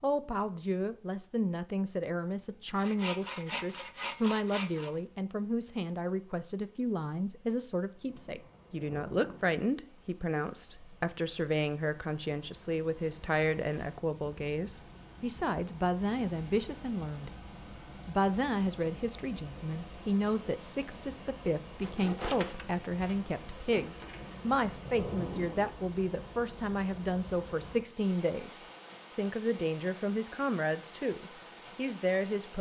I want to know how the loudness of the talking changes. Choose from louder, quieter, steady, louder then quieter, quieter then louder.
steady.